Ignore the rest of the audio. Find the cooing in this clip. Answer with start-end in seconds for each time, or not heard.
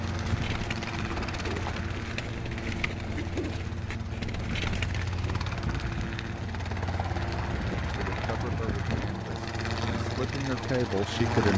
0.2-5.4.